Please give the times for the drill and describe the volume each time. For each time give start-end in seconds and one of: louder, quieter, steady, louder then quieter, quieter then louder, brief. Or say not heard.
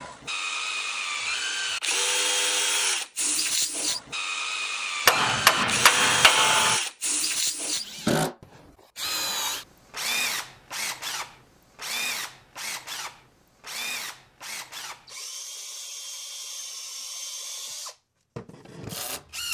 0.0-19.4 quieter.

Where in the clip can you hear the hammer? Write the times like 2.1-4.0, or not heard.
5.0-6.8.